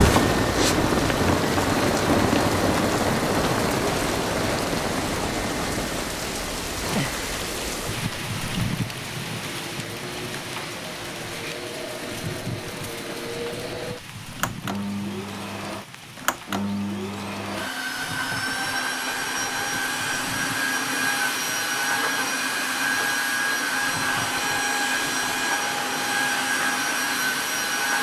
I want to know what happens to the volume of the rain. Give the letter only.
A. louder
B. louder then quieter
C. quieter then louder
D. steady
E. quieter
E.